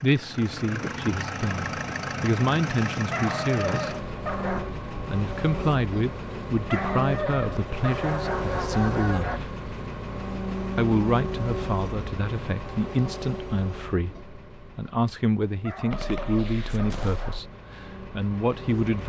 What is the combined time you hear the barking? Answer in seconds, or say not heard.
6 s.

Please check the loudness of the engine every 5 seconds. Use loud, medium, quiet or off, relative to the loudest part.
loud, loud, loud, medium.